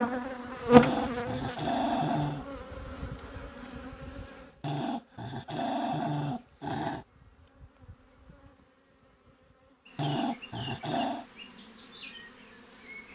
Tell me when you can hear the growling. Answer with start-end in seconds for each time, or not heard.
0.7-2.5, 4.6-7.0, 9.9-11.2.